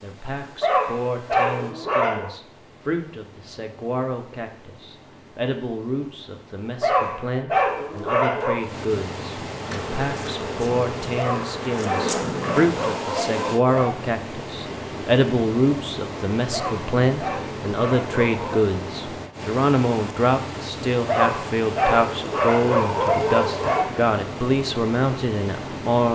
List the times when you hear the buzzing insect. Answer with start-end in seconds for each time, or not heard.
9.6-12.8.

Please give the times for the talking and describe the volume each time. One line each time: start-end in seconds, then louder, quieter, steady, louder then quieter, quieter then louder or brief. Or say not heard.
0.0-26.1 louder.